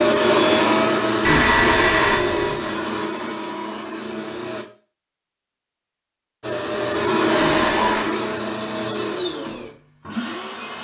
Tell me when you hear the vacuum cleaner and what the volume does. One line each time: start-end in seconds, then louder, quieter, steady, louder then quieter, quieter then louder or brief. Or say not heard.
0.0-4.7 quieter
6.4-10.7 quieter.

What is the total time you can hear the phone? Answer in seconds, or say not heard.
2 s.